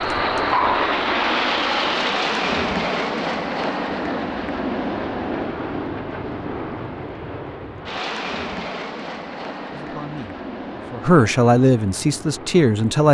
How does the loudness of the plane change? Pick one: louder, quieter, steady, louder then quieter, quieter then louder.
quieter.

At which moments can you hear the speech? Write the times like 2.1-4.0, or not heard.
9.7-13.0.